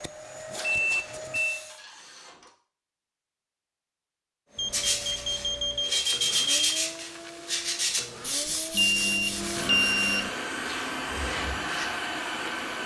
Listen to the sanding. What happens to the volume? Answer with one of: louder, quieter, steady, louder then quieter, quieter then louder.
quieter.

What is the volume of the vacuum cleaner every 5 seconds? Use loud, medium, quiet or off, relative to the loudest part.
medium, medium, loud.